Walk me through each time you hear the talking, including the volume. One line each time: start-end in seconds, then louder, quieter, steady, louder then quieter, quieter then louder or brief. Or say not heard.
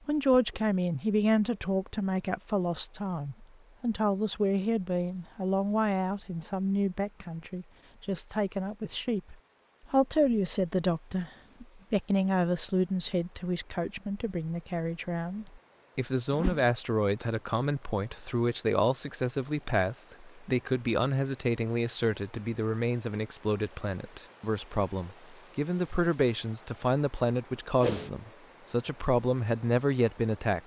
0.1-30.6 steady.